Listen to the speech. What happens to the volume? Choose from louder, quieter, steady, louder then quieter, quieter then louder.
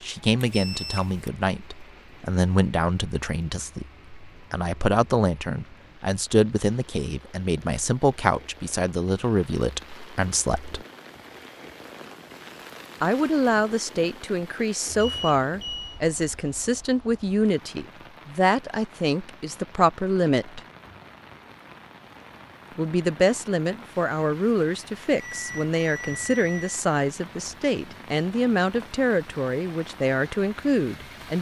steady.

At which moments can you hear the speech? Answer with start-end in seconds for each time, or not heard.
0.0-10.8, 13.0-20.6, 22.8-31.3.